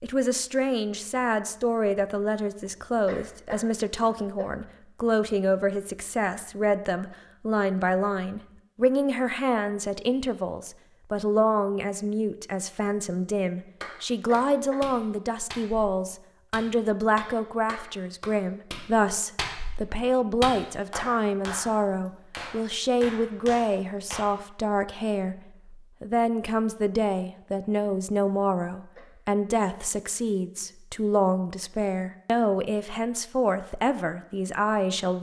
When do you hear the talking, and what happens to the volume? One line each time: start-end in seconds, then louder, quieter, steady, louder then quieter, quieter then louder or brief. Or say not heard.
0.0-35.1 steady.